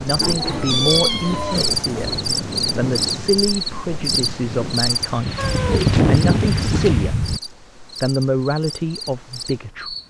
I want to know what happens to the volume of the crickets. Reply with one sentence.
The loudness of the crickets goes down.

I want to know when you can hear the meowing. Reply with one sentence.
The meowing can be heard from 0.1 to 2.2 s and from 5.3 to 7.4 s.